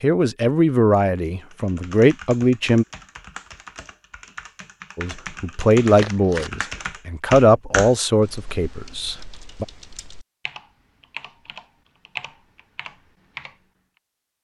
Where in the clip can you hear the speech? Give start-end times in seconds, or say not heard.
0.0-2.9, 5.0-9.7.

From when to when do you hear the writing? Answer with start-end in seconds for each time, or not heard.
not heard.